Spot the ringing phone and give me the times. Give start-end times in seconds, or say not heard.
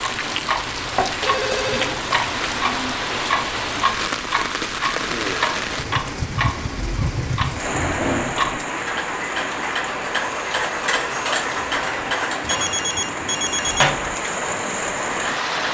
1.2-2.0, 12.4-14.0.